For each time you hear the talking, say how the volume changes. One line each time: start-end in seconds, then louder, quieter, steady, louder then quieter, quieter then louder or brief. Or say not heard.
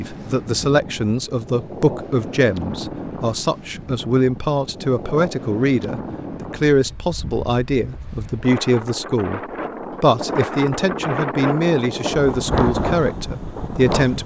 0.0-9.4 steady
10.0-14.2 quieter.